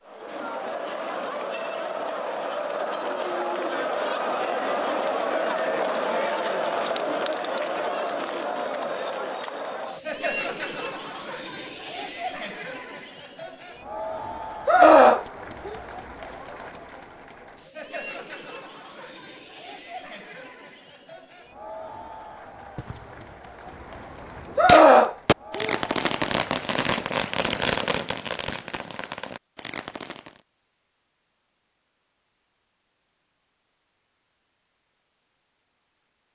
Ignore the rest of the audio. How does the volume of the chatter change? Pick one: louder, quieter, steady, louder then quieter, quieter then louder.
quieter.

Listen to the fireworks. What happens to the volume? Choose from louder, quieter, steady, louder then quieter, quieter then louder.
louder then quieter.